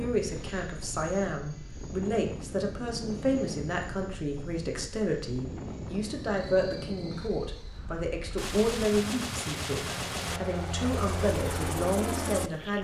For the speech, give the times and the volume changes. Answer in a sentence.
You can hear the speech from 0.0 to 12.7 s, at a steady volume.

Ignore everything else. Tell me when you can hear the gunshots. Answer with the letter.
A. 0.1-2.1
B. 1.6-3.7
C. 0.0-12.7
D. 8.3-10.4
D.